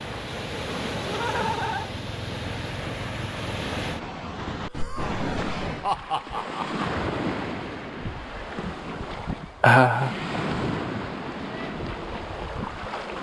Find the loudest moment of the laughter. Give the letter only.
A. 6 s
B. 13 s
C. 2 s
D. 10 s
D.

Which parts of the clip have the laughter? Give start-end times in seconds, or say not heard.
1.1-1.9, 4.7-6.8, 9.6-10.1.